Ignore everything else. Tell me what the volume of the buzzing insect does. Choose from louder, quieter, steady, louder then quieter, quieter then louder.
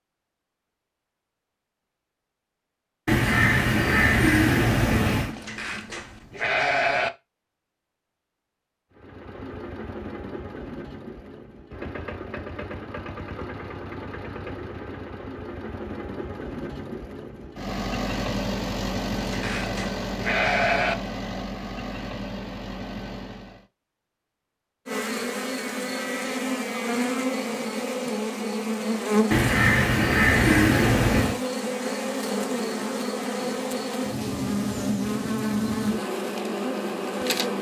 steady.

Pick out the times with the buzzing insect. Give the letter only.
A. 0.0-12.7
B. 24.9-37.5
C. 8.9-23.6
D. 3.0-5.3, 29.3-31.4
B.